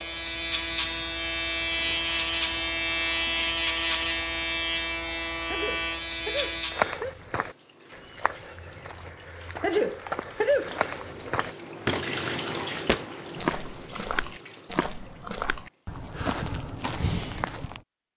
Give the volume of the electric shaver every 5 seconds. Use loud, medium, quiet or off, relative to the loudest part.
loud, loud, off, off.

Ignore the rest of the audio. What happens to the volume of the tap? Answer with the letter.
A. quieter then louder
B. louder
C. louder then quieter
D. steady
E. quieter
C.